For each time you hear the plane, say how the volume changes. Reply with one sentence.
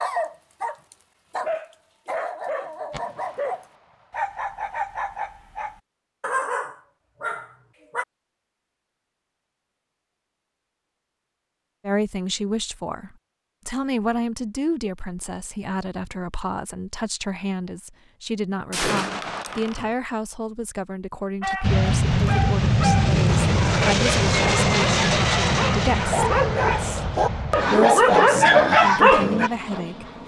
You can hear the plane from 21.6 to 30.2 s, getting quieter.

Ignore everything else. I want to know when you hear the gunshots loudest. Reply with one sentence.
The loudest moment of the gunshots is at 19 seconds.